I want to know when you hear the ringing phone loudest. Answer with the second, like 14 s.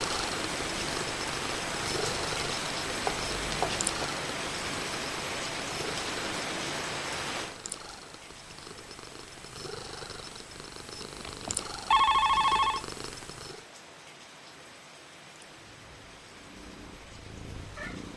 12 s.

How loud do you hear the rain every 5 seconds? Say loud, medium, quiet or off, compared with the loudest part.
loud, loud, quiet, quiet.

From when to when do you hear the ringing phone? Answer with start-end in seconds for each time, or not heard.
3.0-4.0, 11.2-12.8.